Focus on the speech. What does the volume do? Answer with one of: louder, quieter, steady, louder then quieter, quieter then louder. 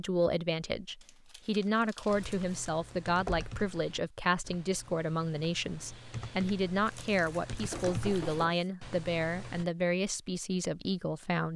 steady.